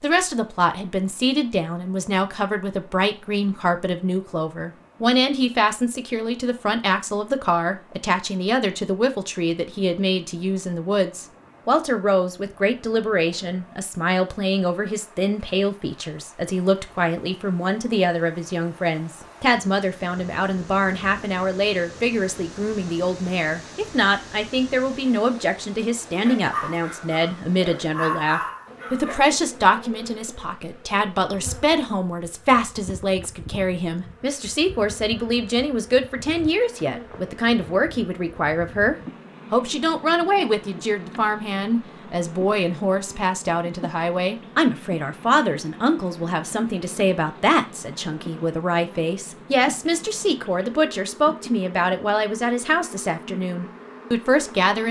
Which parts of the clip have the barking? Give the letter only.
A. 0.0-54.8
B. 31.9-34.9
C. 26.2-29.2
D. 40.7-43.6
C.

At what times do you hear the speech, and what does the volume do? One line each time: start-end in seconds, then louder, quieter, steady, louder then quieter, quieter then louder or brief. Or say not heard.
0.0-54.8 steady.